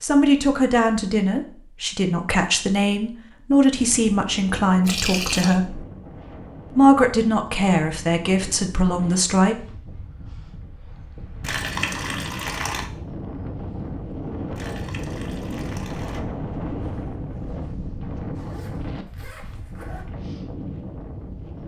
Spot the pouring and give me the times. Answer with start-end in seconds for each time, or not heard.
4.8-5.5, 11.4-12.9, 14.6-16.2.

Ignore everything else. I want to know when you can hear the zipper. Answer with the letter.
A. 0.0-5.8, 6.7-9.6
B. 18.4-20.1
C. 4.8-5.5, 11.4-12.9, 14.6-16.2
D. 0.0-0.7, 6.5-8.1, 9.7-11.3
B.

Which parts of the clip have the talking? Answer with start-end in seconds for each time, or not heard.
0.0-5.8, 6.7-9.6.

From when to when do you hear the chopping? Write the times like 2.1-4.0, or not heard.
not heard.